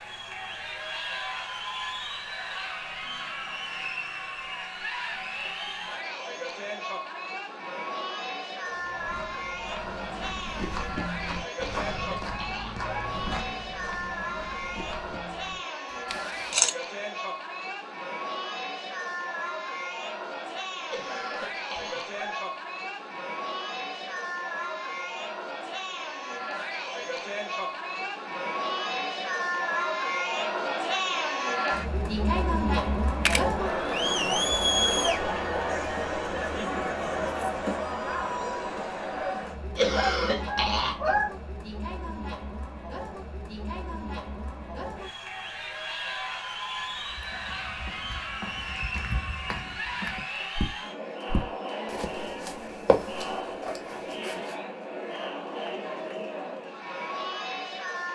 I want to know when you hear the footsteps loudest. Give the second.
53 s.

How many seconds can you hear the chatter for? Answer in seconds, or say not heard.
58 s.